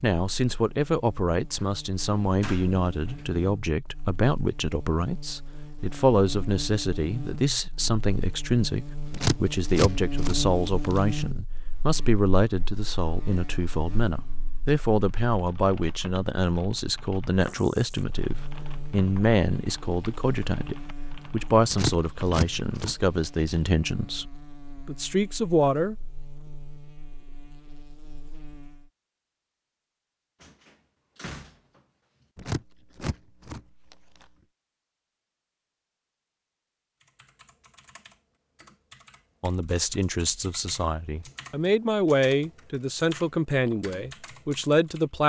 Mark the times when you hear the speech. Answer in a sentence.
You can hear the speech from 0.0 to 25.9 s and from 39.4 to 45.2 s.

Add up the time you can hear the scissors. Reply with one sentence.
You can hear the scissors for 6 seconds altogether.